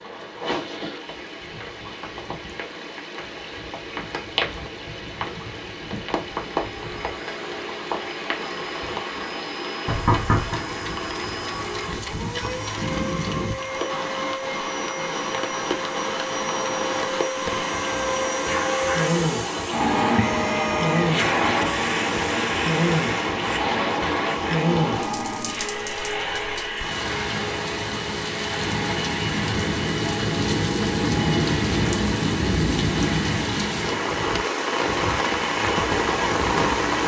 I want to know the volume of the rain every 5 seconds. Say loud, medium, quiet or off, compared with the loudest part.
medium, medium, medium, medium, loud, medium, loud, loud.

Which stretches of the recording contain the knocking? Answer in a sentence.
You can hear the knocking from 9.8 to 10.6 s.